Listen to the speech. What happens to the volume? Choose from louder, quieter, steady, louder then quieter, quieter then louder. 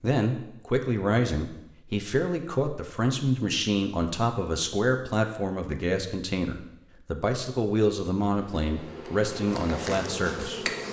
steady.